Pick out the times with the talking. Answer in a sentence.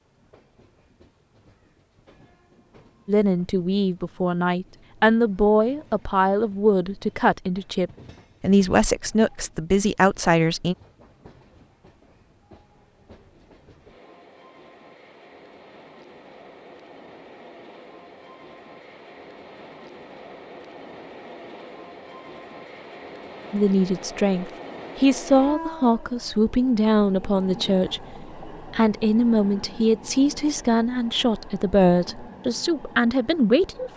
The talking can be heard from 3.0 to 10.8 s and from 23.5 to 33.9 s.